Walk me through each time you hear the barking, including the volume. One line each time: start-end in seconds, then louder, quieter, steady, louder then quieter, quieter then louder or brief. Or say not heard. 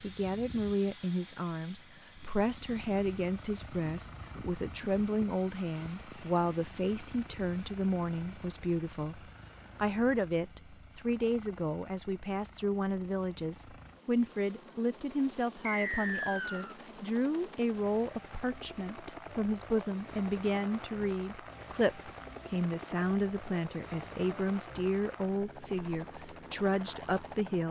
not heard.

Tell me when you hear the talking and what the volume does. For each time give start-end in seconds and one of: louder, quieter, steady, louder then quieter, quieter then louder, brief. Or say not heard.
0.0-27.6 steady.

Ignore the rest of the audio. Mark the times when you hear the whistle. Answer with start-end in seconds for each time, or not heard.
15.7-16.8.